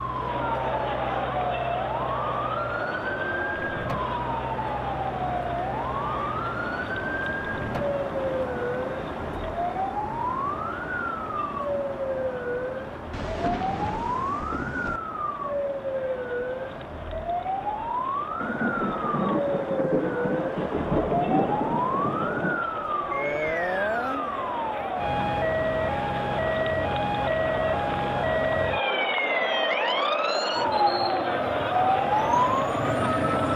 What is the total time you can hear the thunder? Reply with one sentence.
The thunder can be heard for 6 seconds in total.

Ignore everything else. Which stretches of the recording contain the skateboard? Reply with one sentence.
You can't hear the skateboard here.